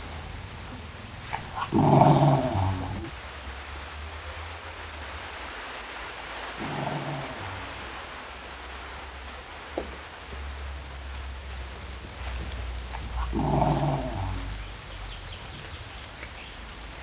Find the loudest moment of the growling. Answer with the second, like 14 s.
2 s.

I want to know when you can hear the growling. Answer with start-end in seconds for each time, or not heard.
1.3-3.1, 6.3-8.0, 12.9-14.6.